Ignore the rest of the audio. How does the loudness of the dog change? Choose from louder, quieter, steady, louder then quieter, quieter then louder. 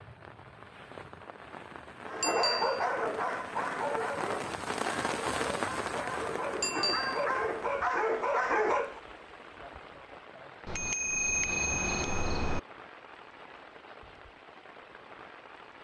quieter then louder.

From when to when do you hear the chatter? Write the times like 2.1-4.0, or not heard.
not heard.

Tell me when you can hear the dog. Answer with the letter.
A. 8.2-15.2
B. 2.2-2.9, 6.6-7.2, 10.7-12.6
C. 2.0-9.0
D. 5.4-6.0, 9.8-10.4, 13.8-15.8
C.